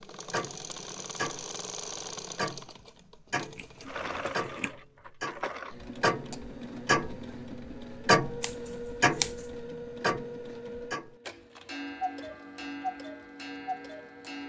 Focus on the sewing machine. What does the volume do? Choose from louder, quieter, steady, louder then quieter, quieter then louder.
quieter.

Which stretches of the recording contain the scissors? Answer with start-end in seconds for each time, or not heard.
3.5-4.8, 8.4-9.5.